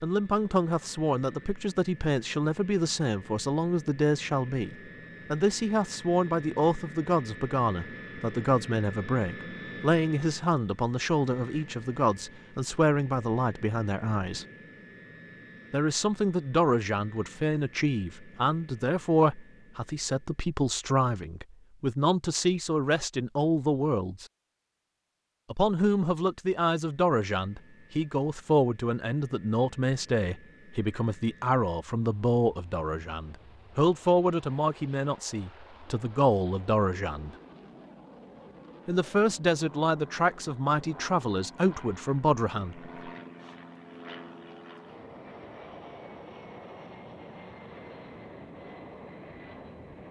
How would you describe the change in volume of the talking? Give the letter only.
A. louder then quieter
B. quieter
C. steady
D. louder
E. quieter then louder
C.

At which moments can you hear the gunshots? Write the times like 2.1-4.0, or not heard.
not heard.